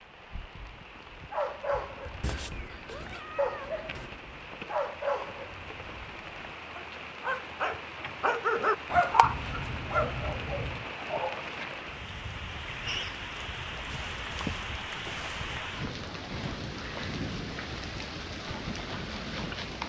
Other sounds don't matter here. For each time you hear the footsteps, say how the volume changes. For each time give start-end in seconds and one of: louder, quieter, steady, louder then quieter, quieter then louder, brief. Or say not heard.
not heard.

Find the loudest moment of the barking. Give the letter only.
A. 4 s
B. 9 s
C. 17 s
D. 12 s
B.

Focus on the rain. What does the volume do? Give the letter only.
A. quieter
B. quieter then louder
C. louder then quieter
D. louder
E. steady
D.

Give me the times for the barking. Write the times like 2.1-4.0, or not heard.
1.3-11.4.